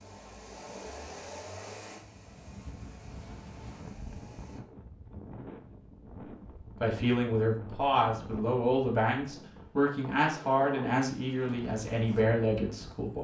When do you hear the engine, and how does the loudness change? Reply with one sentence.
The engine can be heard from 0.0 to 4.6 s, getting quieter.